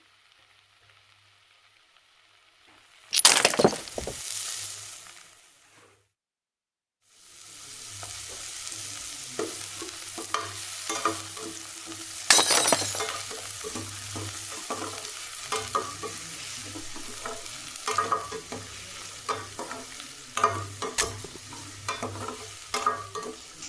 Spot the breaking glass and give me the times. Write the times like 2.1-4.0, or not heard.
3.1-4.2, 12.3-13.1, 20.9-21.4.